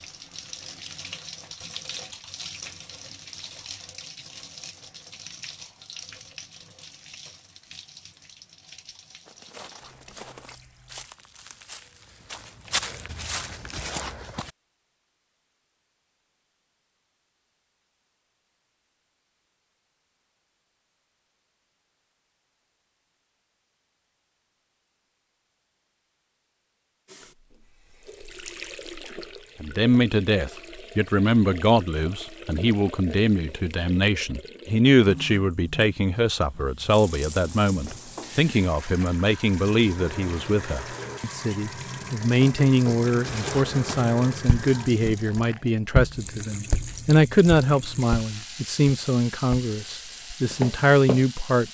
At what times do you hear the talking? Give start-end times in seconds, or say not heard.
29.6-51.6.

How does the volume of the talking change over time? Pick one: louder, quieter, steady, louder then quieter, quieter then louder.
steady.